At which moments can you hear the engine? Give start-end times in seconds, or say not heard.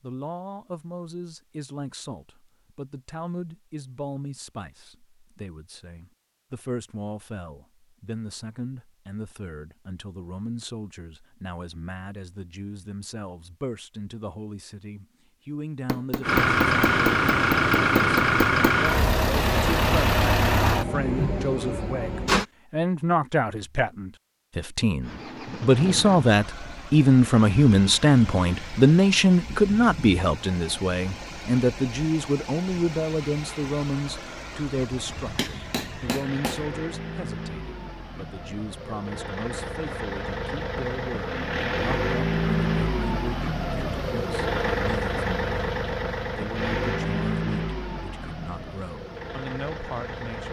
16.2-22.4, 25.0-50.4.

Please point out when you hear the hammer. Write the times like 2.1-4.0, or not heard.
15.8-18.8, 35.1-36.7.